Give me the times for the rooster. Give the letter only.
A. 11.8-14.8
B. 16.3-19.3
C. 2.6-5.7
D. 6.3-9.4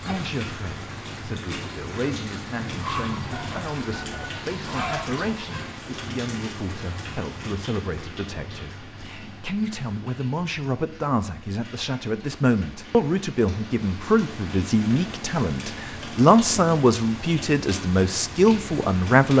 C.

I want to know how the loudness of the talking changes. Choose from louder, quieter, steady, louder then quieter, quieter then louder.
louder.